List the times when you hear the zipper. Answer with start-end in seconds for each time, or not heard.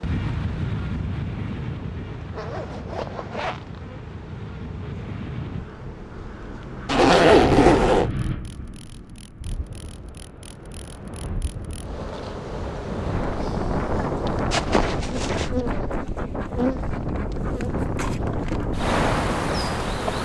2.3-3.8, 6.8-8.1, 14.5-15.5.